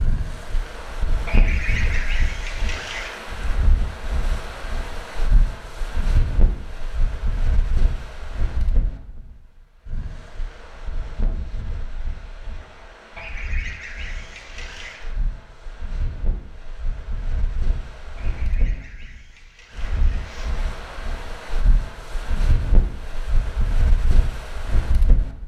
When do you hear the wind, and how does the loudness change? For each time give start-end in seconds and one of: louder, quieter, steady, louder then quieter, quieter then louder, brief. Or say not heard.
0.0-25.4 quieter then louder.